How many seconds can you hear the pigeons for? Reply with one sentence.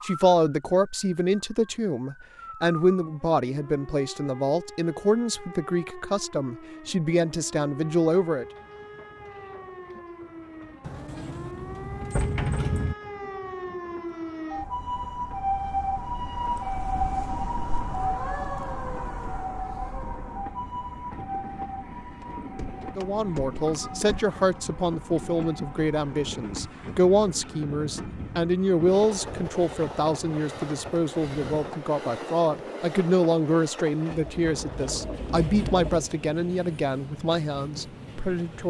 You can hear the pigeons for 2 seconds altogether.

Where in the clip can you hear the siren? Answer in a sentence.
The siren can be heard from 0.0 to 31.8 s.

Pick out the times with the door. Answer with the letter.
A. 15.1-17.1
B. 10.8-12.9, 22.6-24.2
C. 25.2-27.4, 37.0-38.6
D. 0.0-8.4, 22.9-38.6
B.